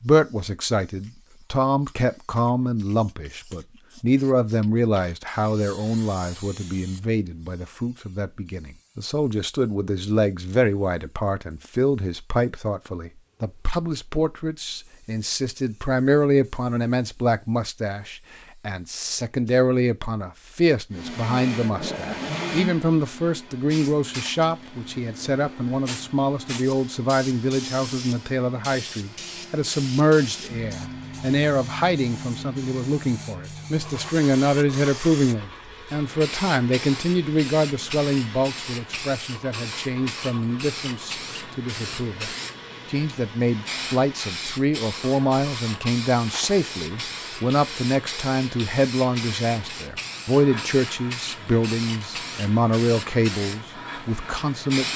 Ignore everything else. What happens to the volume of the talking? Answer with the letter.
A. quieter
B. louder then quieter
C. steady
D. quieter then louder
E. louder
C.